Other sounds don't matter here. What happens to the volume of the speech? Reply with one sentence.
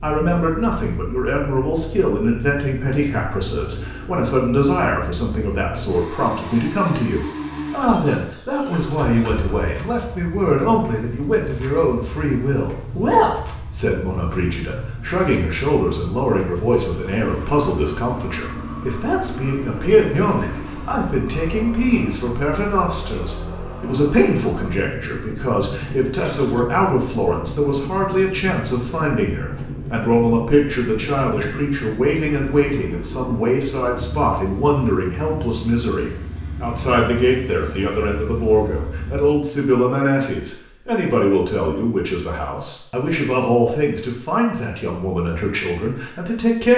The volume of the speech stays about the same.